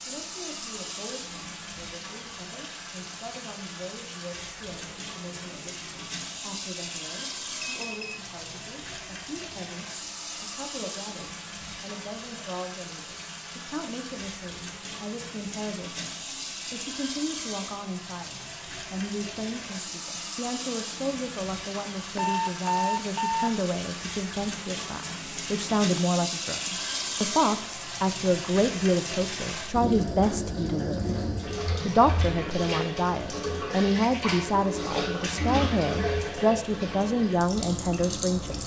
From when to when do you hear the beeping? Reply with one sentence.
The beeping can be heard from 7.6 to 8.2 s and from 22.1 to 23.5 s.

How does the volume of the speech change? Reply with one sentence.
The volume of the speech goes up.